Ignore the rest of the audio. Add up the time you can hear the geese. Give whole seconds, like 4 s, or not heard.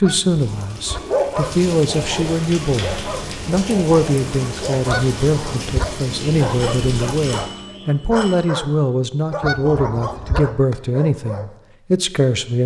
3 s.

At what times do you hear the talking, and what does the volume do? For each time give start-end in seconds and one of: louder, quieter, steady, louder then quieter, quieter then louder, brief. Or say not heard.
0.0-12.6 steady.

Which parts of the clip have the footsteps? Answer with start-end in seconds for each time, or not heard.
not heard.